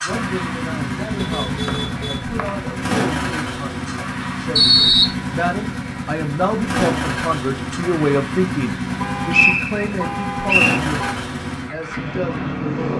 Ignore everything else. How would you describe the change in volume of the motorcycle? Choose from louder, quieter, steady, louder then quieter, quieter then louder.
steady.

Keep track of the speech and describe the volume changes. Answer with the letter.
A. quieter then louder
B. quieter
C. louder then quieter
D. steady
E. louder
C.